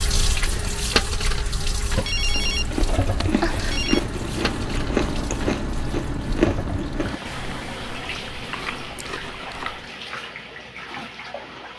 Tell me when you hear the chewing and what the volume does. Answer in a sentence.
You can hear the chewing from 2.4 to 9.9 s, getting quieter.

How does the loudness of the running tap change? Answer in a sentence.
The loudness of the running tap goes down.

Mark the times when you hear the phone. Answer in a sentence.
You can hear the phone from 2.0 to 4.0 s.